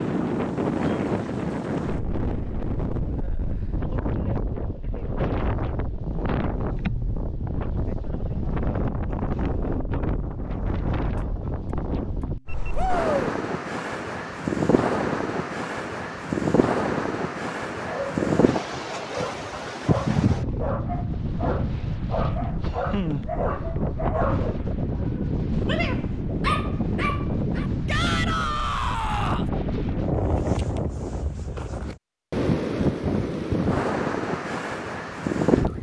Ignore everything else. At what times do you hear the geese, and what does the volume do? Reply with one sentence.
The geese can't be heard in this clip.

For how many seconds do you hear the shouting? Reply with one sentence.
The shouting can be heard for 2 seconds in total.